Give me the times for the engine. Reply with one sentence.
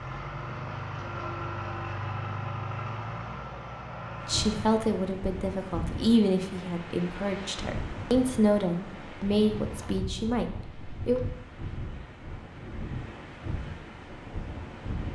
The engine can be heard from 0.0 to 5.1 s.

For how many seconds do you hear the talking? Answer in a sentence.
You can hear the talking for 7 seconds altogether.